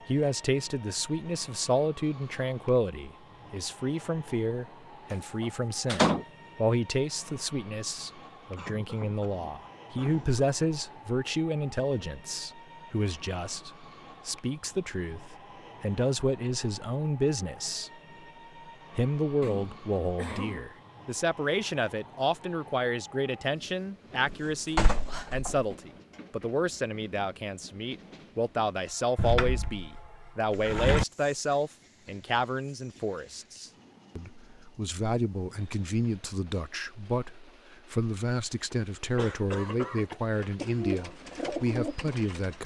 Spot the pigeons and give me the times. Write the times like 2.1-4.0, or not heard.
40.4-42.6.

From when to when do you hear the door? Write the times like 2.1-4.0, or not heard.
5.1-6.2, 24.2-25.6, 29.1-31.1.